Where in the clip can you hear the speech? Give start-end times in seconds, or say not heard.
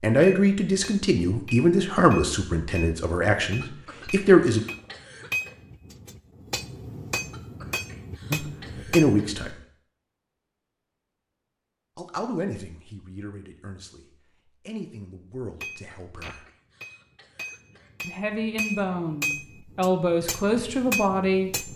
0.0-4.6, 8.3-9.6, 11.9-16.4, 18.0-21.7.